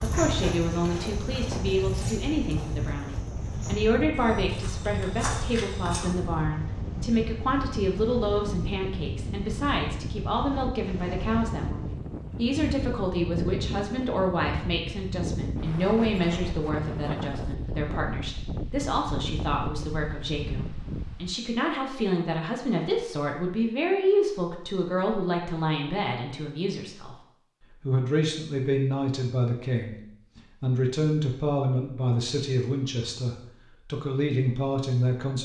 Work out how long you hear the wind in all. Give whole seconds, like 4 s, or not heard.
21 s.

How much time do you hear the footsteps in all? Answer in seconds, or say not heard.
6 s.